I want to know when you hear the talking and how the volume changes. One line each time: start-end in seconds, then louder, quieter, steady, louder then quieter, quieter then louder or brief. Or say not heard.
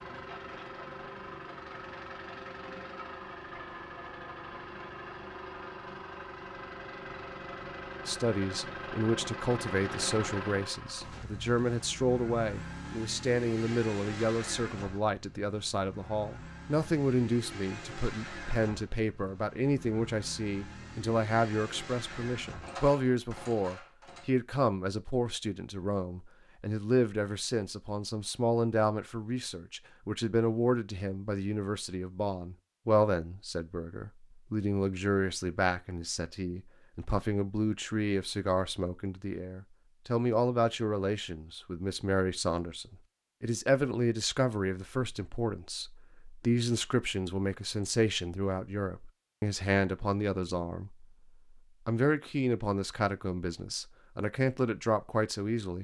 8.1-55.7 steady.